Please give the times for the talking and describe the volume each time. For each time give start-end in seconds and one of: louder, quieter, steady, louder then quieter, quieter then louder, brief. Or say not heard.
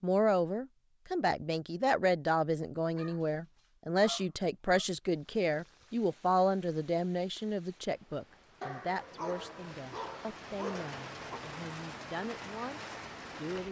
0.0-13.6 quieter.